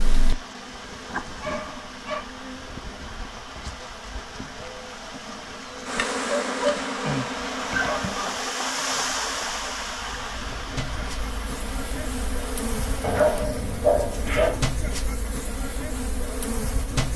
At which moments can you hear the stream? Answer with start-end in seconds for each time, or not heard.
0.0-13.5.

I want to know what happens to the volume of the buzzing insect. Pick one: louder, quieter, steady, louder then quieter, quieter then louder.
louder.